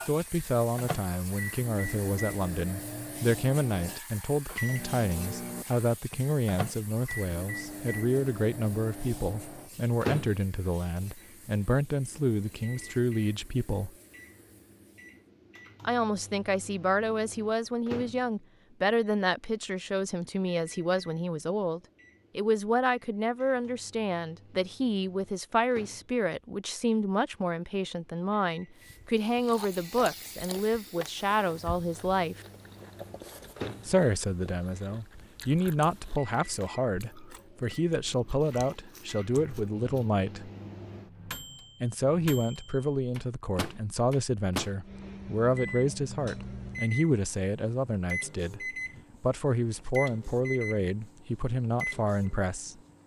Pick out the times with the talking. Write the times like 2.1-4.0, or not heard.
0.1-13.9, 15.8-32.4, 33.9-40.5, 41.8-52.8.